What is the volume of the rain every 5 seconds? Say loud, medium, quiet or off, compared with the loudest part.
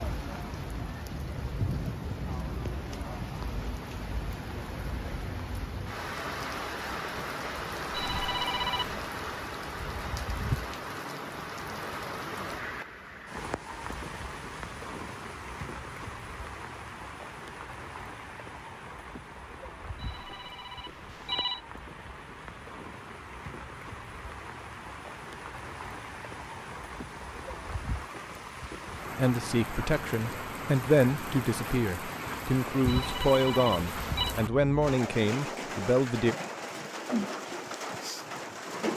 loud, loud, loud, medium, medium, medium, loud, loud.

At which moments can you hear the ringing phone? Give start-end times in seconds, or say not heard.
7.9-9.0, 19.9-21.6, 32.9-34.4.